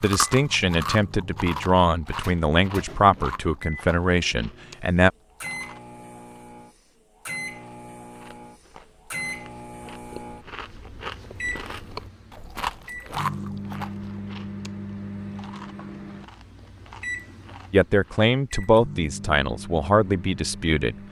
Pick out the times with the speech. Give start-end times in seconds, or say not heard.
0.0-5.1, 17.7-20.9.